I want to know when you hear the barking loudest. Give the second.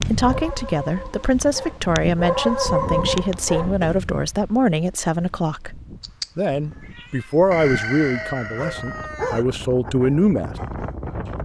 3 s.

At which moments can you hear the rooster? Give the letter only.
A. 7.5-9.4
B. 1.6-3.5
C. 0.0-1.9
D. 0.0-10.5
A.